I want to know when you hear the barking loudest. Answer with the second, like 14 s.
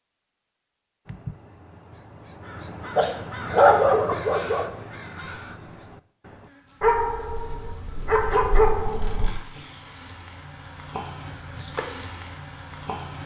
4 s.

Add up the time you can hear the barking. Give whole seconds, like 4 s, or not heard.
4 s.